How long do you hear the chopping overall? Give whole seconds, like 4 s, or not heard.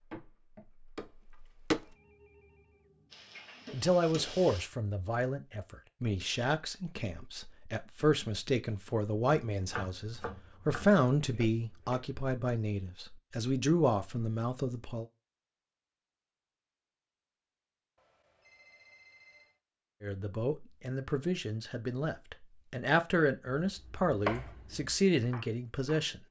7 s.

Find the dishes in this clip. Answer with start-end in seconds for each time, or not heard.
not heard.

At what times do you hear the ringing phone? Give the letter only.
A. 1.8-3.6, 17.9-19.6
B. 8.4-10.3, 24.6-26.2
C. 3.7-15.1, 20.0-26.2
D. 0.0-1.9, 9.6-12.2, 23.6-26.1
A.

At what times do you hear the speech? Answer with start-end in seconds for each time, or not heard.
3.7-15.1, 20.0-26.2.